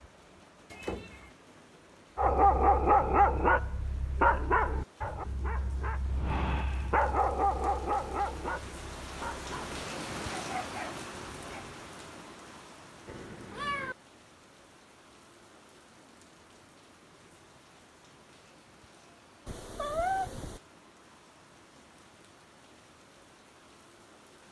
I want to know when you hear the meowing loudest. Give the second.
20 s.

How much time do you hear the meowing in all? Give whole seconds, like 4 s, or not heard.
3 s.